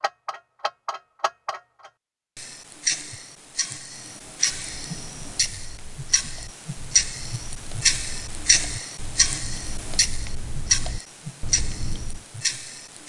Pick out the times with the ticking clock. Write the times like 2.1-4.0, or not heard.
0.0-13.0.